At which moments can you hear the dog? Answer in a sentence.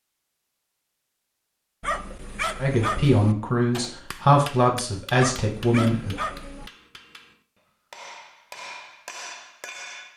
You can hear the dog from 1.8 to 3.4 s and from 5.2 to 6.7 s.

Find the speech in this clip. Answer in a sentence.
You can hear the speech from 2.6 to 6.2 s.